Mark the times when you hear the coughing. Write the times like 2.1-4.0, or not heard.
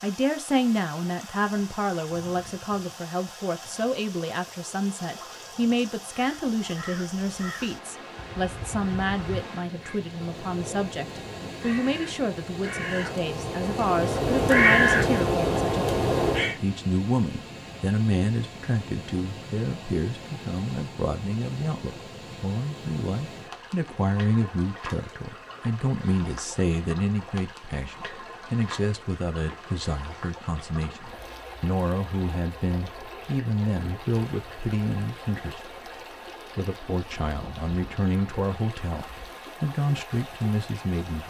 not heard.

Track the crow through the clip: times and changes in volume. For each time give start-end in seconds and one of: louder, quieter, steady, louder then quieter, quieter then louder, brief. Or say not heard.
6.3-16.6 louder.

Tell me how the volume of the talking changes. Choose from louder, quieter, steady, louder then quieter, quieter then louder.
steady.